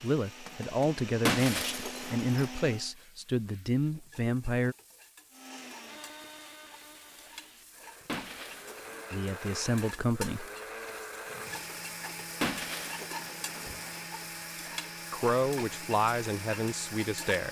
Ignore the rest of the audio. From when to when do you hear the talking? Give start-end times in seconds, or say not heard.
0.0-4.8, 9.1-10.4, 15.1-17.4.